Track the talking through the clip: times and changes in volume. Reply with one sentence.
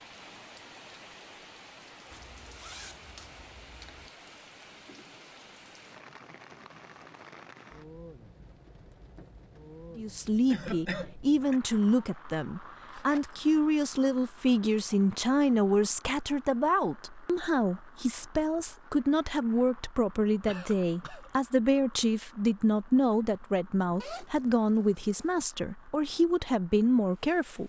The talking can be heard from 9.9 to 27.6 s, at a steady volume.